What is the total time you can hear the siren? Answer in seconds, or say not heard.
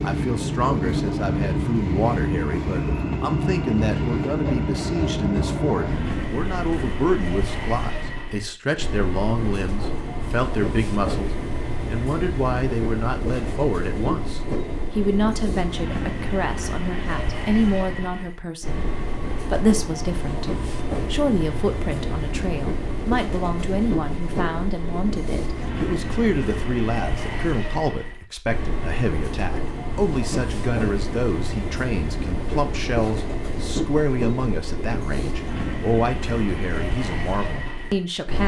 not heard.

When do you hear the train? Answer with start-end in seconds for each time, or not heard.
0.0-38.4.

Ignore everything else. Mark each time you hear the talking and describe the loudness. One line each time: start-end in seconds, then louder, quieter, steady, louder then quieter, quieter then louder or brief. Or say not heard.
0.0-38.4 steady.